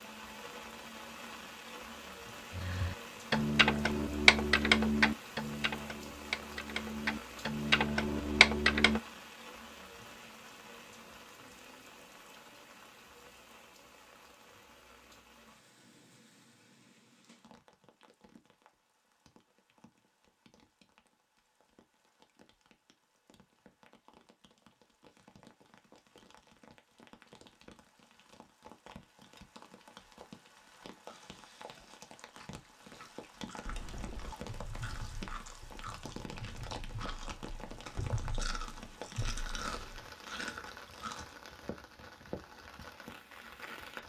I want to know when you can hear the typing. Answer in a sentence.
You can hear the typing from 2.5 to 9.0 s and from 33.6 to 40.1 s.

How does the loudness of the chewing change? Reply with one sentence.
The volume of the chewing goes up.